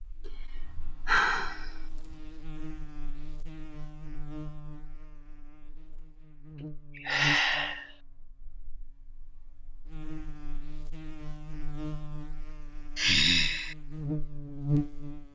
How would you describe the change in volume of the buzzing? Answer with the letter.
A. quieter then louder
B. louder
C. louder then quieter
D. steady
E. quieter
B.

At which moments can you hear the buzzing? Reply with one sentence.
You can hear the buzzing from 0.0 to 15.3 s.